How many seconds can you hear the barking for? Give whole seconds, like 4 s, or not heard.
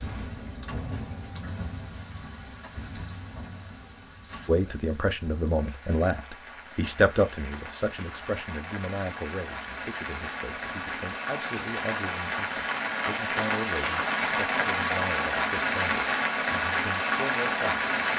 not heard.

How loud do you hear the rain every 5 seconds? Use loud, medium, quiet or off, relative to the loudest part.
quiet, quiet, loud, loud.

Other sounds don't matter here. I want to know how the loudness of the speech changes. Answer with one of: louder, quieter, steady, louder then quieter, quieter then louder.
quieter.